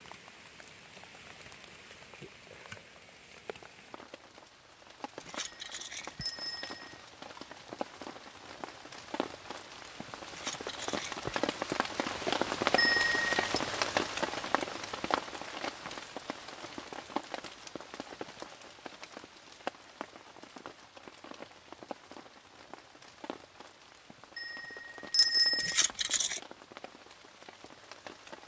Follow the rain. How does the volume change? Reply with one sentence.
The volume of the rain goes up, then down.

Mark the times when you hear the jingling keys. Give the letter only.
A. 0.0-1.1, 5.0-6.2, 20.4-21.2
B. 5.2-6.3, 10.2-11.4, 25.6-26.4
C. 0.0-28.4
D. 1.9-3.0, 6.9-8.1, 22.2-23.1
B.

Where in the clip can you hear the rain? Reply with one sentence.
You can hear the rain from 0.0 to 28.4 s.